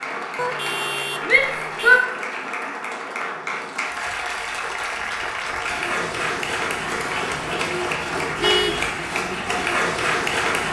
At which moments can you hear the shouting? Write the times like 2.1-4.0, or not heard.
1.2-2.0.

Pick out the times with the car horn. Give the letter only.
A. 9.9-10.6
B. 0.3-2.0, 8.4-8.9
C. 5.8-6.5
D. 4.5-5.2
B.